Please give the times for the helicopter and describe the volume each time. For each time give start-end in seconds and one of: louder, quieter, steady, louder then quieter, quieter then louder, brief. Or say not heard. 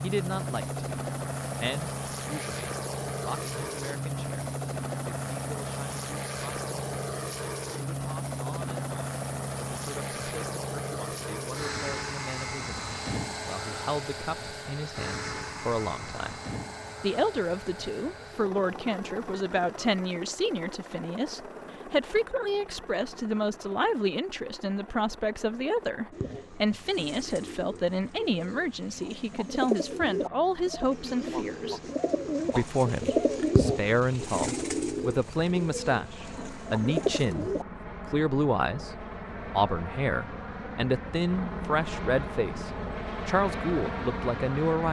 0.0-44.8 quieter then louder.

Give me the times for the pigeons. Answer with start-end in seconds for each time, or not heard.
26.1-37.6.